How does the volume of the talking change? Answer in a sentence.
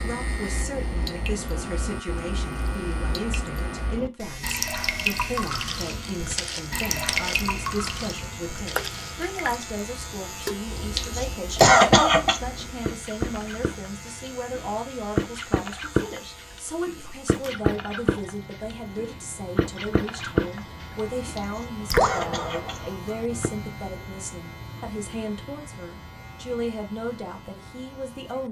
The volume of the talking stays about the same.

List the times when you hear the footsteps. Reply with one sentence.
You can hear the footsteps from 5.5 to 9.2 s.